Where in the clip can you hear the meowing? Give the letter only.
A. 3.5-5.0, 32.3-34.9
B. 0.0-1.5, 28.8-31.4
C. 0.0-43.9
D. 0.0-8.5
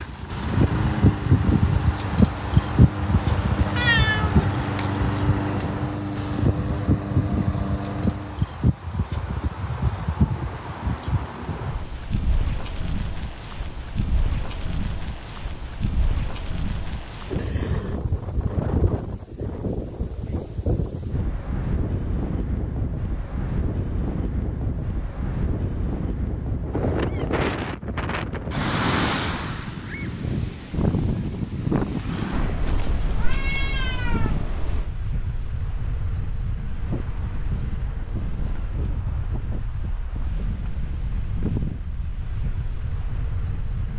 A.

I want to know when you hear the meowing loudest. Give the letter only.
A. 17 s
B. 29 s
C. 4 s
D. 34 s
C.